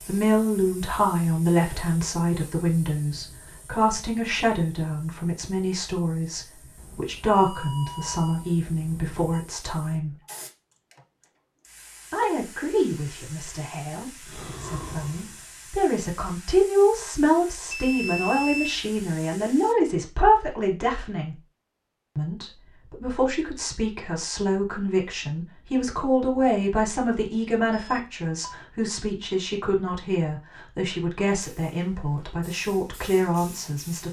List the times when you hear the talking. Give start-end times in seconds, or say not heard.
0.0-10.2, 12.1-21.4, 22.1-34.0.